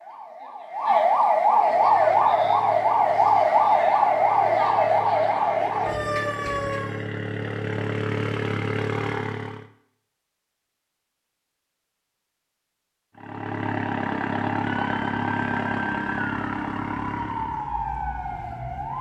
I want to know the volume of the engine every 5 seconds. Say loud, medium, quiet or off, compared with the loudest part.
quiet, loud, loud, loud.